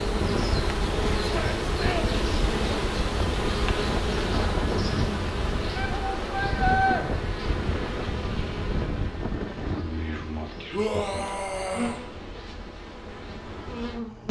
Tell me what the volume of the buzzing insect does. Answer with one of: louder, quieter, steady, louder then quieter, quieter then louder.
quieter.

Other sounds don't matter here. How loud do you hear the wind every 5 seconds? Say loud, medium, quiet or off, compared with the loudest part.
loud, loud, quiet.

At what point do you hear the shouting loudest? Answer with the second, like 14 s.
7 s.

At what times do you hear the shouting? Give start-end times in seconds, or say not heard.
1.2-2.0, 5.8-7.0, 10.7-12.0.